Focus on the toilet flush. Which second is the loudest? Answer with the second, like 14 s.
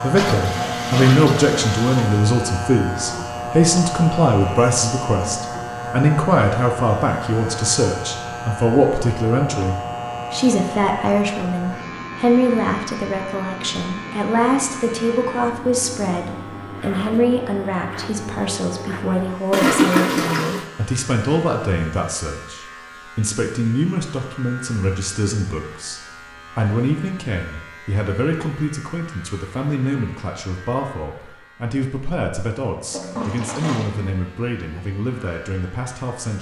20 s.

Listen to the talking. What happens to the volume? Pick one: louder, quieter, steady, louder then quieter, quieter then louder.
quieter.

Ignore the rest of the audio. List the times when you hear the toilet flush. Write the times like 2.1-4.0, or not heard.
0.1-2.2, 19.5-20.6, 32.9-33.9.